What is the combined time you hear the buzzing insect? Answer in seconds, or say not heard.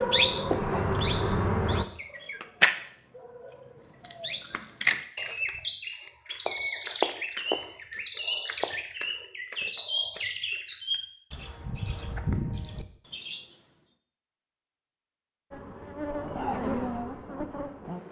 4 s.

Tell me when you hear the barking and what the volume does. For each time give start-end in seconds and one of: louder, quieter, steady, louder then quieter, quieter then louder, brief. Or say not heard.
not heard.